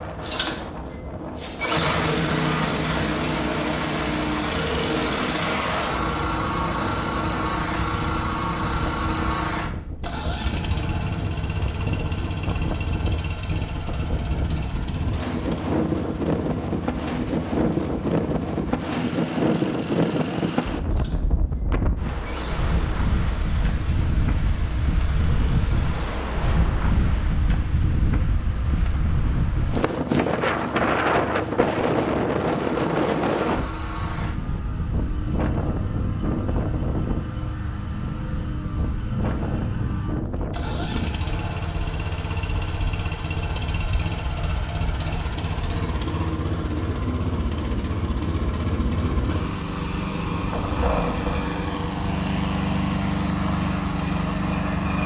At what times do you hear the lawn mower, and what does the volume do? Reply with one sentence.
The lawn mower can be heard from 0.0 to 55.0 s, getting quieter then louder.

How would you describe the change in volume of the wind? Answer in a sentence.
The volume of the wind goes up, then down.